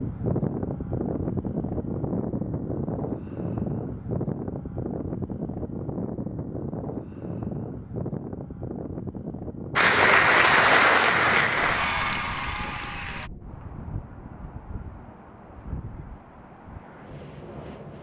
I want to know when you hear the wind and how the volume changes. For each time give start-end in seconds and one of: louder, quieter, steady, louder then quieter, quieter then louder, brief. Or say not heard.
0.0-17.9 quieter.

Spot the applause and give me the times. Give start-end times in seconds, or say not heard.
9.8-13.3.